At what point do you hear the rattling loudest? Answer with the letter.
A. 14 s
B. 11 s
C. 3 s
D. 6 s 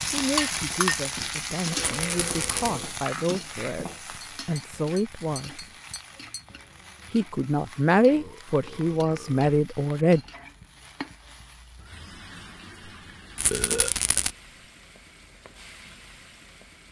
A.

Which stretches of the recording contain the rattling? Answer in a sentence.
The rattling can be heard from 1.8 to 2.7 s and from 13.3 to 14.3 s.